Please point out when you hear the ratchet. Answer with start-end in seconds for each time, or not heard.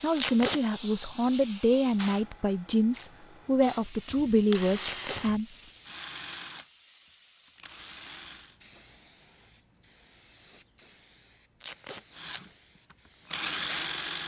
not heard.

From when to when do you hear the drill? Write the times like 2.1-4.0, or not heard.
3.0-8.6, 12.2-14.2.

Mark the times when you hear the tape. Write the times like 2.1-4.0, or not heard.
0.1-0.6, 4.8-5.2, 11.6-12.1.